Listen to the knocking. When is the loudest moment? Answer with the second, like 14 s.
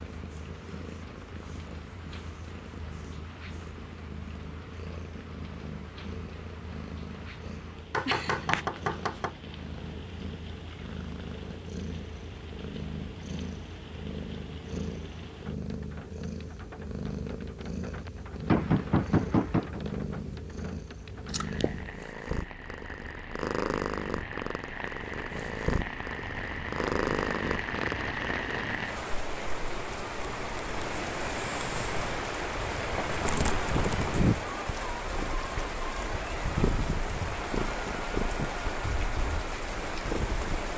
19 s.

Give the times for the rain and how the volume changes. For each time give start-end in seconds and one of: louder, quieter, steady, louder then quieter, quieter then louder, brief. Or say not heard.
0.0-40.7 louder.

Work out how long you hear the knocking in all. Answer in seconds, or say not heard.
4 s.